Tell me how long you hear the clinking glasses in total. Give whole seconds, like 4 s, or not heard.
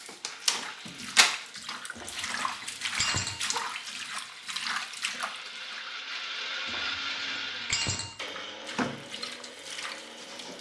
3 s.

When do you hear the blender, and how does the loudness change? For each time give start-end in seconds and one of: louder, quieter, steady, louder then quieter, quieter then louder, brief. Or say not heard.
0.0-10.5 louder then quieter.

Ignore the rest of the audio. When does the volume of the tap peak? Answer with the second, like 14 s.
1 s.